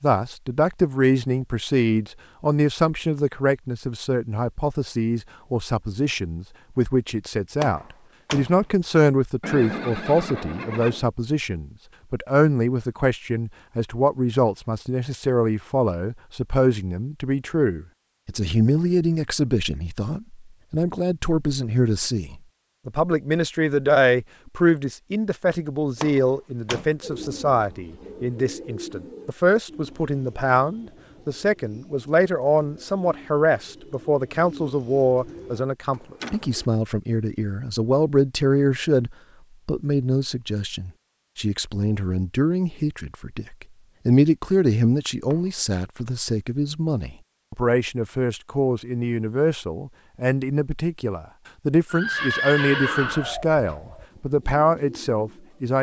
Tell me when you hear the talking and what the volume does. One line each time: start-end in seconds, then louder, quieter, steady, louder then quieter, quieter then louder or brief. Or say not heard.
0.0-55.7 steady.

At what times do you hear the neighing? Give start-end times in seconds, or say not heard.
9.4-11.1, 51.9-53.4.